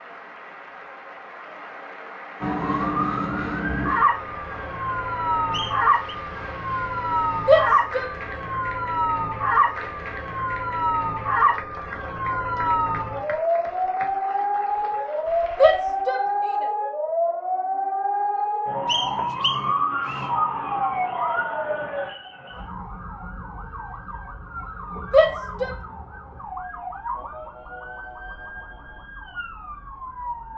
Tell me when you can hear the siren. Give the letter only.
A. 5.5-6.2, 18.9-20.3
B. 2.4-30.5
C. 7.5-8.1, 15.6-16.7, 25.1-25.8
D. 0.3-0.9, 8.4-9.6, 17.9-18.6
B.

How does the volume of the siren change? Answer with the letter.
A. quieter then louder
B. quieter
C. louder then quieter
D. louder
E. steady
B.